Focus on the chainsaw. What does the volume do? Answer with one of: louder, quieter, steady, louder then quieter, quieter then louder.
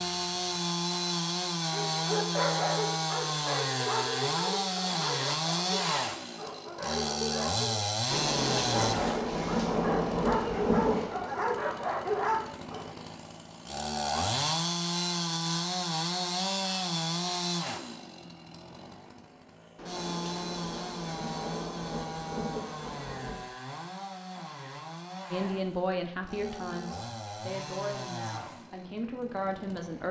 quieter.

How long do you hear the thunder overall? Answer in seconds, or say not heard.
7 s.